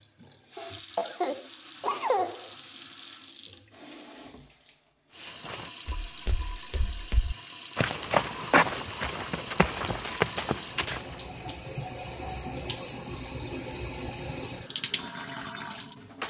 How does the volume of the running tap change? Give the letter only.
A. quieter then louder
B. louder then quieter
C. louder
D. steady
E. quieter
C.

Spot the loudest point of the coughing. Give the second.
2 s.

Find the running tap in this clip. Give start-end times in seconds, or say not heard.
0.0-16.2.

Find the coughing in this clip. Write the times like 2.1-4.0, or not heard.
0.6-2.5.